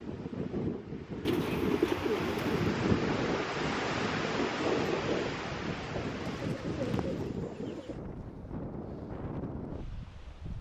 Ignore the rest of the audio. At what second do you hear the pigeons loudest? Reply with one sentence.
The loudest moment of the pigeons is at 2 seconds.